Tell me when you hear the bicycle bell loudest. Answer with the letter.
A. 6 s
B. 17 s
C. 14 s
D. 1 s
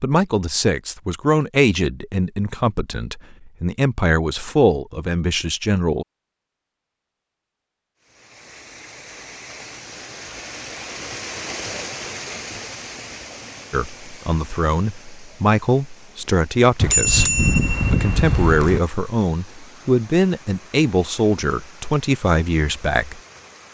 B.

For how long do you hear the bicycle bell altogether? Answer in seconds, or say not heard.
2 s.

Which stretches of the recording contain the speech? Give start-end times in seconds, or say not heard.
0.0-6.0, 13.7-23.2.